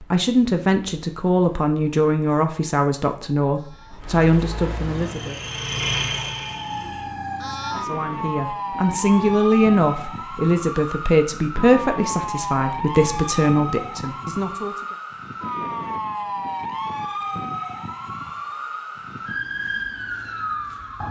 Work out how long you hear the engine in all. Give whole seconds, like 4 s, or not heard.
2 s.